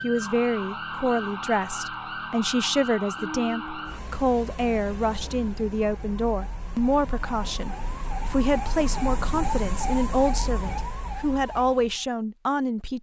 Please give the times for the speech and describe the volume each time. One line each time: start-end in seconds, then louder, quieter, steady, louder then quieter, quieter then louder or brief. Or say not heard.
0.0-12.9 steady.